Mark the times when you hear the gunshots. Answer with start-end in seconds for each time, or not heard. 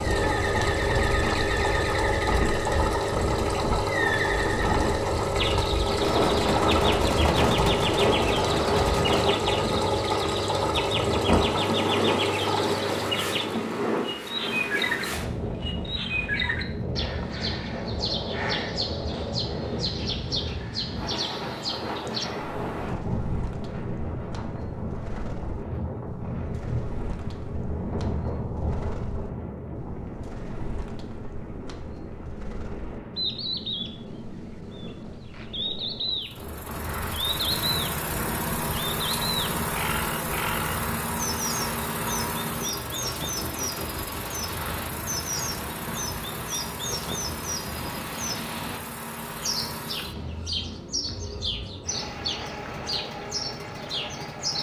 6.0-9.3.